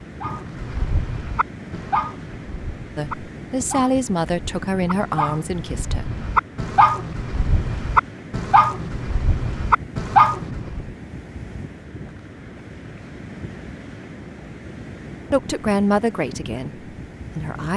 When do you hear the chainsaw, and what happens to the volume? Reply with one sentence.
You can't hear the chainsaw here.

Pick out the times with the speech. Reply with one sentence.
You can hear the speech from 3.0 to 6.1 s and from 15.3 to 17.7 s.